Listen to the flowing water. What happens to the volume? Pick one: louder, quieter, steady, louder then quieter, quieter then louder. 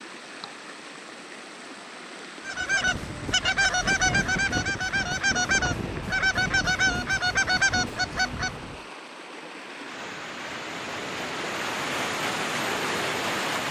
louder.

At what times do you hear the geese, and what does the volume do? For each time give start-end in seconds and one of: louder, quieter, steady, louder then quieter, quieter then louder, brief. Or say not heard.
2.5-8.8 steady.